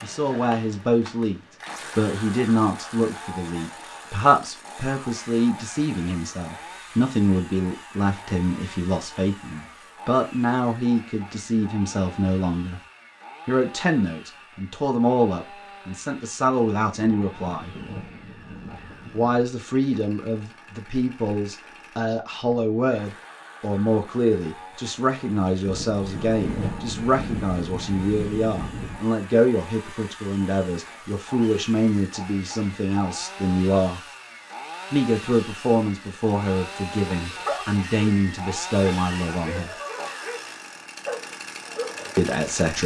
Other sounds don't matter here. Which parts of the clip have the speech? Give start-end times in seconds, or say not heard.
0.0-12.8, 13.4-17.8, 19.1-34.0, 34.9-39.8, 42.1-42.8.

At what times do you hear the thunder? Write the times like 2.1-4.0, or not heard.
17.2-19.4, 25.6-29.1.